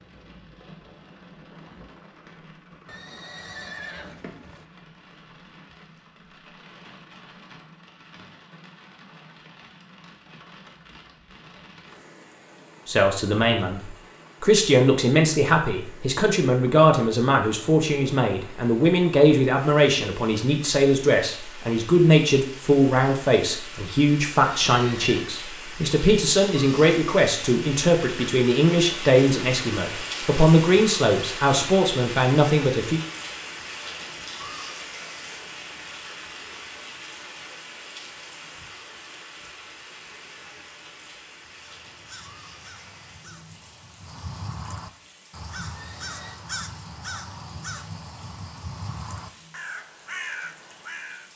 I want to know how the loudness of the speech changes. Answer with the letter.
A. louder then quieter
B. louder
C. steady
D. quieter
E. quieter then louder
C.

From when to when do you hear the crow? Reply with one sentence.
The crow can be heard from 41.5 to 51.3 s.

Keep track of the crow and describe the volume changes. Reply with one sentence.
The volume of the crow goes up.